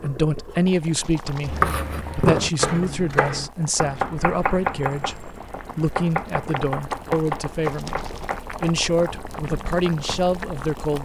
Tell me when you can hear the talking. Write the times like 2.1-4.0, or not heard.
0.0-11.0.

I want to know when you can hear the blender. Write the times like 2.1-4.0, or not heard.
not heard.